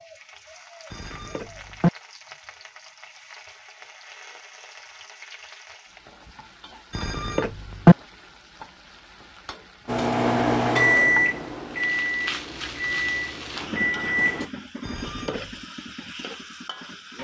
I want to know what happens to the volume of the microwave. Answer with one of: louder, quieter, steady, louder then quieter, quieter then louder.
quieter.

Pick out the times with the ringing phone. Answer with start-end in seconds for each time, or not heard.
0.9-1.9, 7.0-8.0, 14.8-15.5.